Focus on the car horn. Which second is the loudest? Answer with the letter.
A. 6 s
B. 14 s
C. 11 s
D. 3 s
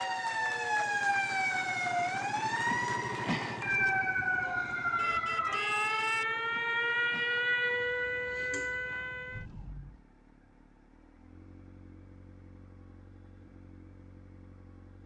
A.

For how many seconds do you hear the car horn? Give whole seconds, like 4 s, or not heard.
2 s.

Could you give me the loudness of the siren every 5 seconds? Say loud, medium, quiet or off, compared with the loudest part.
loud, loud, off.